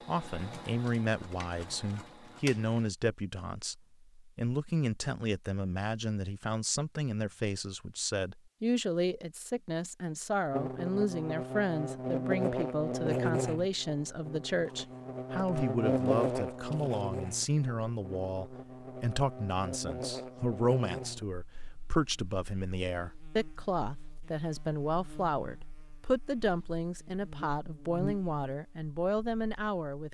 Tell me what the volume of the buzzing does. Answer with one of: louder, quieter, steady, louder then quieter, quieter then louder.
quieter then louder.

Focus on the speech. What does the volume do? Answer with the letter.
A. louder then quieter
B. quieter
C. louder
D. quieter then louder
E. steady
E.